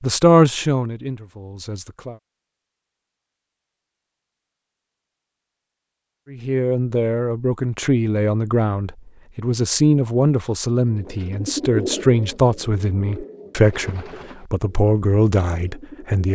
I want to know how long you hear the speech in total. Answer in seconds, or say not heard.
12 s.